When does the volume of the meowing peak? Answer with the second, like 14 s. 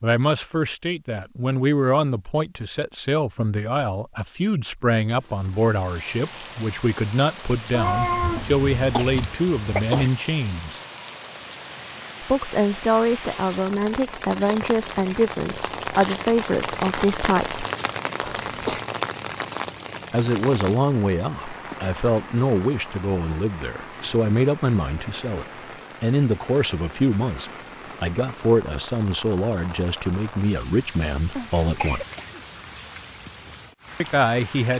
8 s.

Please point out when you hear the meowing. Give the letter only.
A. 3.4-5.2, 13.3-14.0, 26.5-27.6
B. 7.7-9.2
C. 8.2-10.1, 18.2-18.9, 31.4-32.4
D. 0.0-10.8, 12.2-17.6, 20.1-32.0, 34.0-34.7
B.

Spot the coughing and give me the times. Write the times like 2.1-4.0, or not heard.
8.2-10.1, 18.2-18.9, 31.4-32.4.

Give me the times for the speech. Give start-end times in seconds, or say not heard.
0.0-10.8, 12.2-17.6, 20.1-32.0, 34.0-34.7.